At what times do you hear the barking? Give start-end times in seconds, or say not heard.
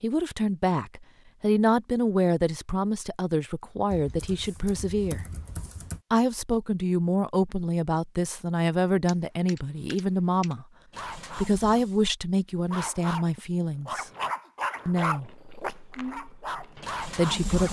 10.9-17.6.